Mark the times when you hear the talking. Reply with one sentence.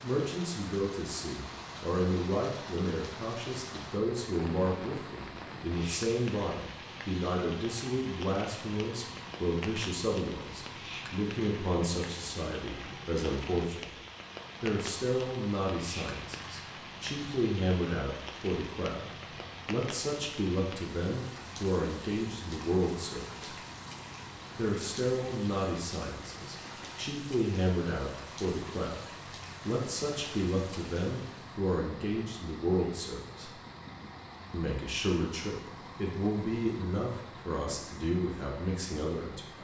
You can hear the talking from 0.0 to 13.9 s, from 14.6 to 23.6 s, from 24.6 to 33.5 s and from 34.5 to 39.5 s.